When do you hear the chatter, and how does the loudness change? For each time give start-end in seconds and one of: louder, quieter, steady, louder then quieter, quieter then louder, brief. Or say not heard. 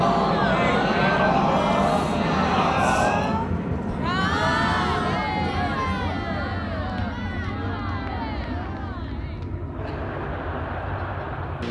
0.0-11.6 quieter.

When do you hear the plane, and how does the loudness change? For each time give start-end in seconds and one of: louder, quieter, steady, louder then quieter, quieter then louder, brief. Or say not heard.
0.0-11.6 quieter.